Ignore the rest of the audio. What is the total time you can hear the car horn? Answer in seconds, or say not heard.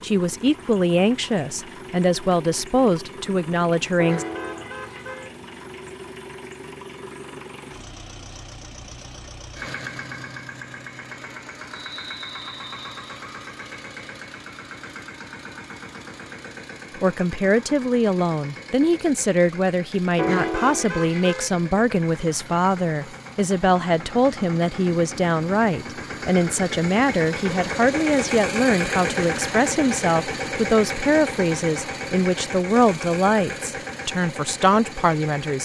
3 s.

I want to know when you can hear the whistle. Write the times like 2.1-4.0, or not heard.
11.7-13.2.